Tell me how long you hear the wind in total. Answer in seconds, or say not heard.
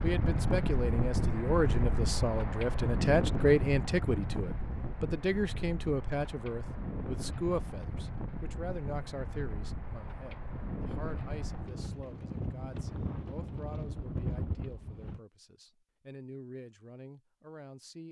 15 s.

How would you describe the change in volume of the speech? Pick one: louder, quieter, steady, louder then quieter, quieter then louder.
quieter.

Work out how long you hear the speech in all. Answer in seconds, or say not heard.
18 s.